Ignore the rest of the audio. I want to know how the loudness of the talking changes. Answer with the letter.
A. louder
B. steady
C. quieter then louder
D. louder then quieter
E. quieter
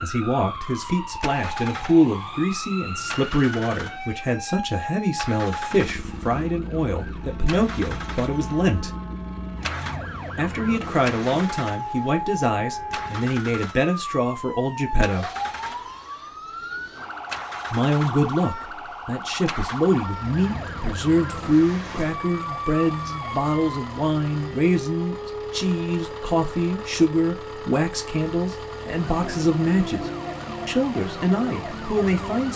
B.